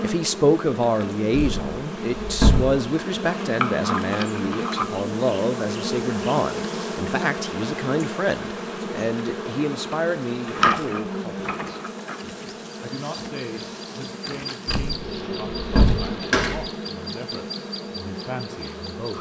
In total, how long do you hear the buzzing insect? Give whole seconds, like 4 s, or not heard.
19 s.